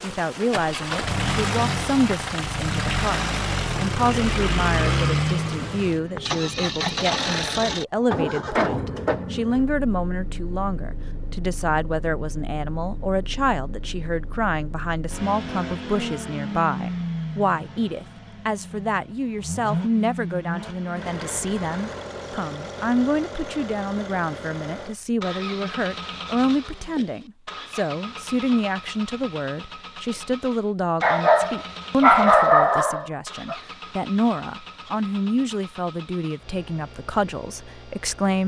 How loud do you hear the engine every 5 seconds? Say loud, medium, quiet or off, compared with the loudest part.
loud, loud, quiet, medium, medium, medium, quiet, quiet.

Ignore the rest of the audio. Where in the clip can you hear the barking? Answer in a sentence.
The barking can be heard from 31.0 to 33.5 s.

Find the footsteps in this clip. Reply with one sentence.
The footsteps can't be heard in this clip.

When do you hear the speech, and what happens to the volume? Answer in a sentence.
The speech can be heard from 0.0 to 38.4 s, at a steady volume.